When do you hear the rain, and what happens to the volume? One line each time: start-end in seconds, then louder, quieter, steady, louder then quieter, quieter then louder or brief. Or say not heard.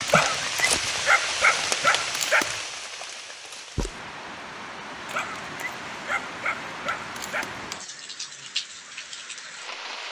0.0-10.0 quieter.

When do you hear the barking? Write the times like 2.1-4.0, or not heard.
0.1-2.6, 5.0-7.8.